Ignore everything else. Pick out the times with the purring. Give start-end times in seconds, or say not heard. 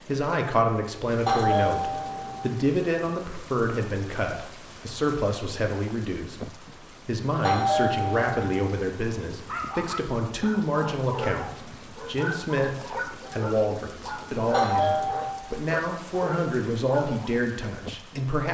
not heard.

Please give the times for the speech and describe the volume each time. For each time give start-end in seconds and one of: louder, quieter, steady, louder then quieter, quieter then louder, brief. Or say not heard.
0.1-18.4 steady.